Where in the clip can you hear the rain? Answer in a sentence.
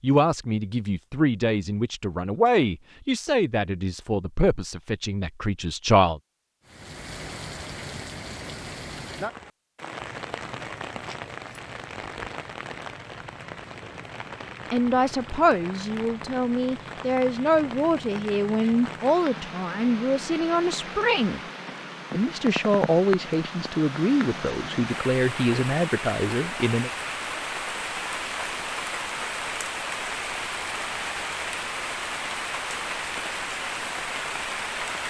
The rain can be heard from 6.7 to 35.0 s.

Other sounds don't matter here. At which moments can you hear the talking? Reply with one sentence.
The talking can be heard from 0.0 to 6.2 s, from 14.7 to 21.4 s and from 22.1 to 26.9 s.